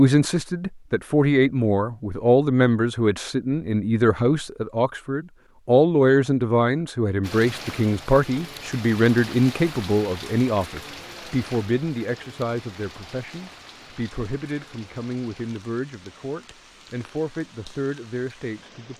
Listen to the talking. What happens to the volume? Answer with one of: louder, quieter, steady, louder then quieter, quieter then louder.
quieter.